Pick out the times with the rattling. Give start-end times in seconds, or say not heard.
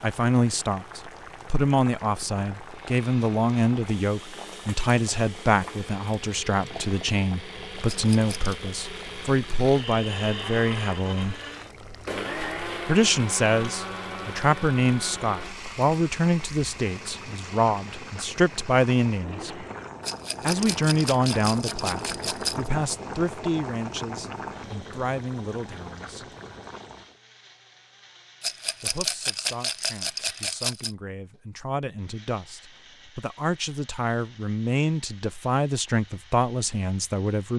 7.8-8.6, 20.0-22.7, 28.4-30.9.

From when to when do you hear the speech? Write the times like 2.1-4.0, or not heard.
0.0-11.4, 12.8-19.6, 20.4-26.2, 28.8-37.5.